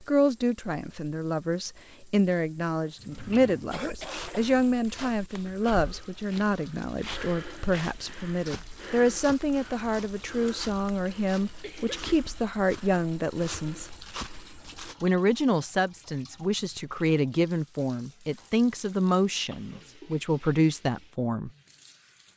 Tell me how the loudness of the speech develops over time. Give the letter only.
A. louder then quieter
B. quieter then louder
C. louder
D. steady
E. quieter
D.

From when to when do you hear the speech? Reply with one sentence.
You can hear the speech from 0.1 to 13.9 s and from 15.0 to 21.5 s.